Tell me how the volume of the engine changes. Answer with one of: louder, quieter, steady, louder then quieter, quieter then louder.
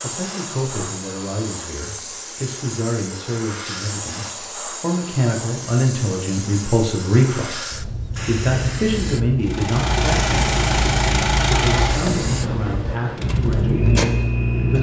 quieter then louder.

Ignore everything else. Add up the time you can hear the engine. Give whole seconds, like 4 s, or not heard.
5 s.